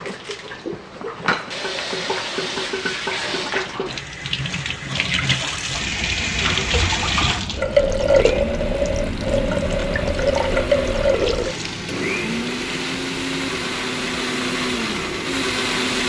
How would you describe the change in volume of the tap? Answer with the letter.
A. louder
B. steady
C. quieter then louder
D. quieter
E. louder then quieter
E.